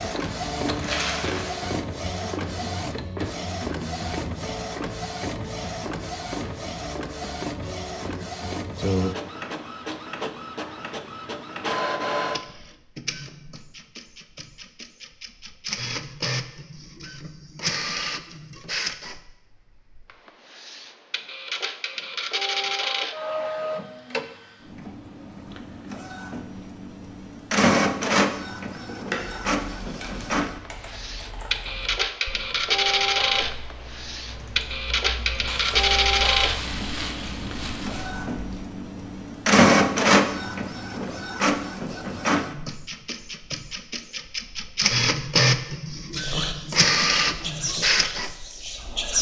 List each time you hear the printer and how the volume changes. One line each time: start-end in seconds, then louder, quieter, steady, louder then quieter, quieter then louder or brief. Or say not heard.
0.0-49.1 louder.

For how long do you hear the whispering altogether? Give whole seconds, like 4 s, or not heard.
3 s.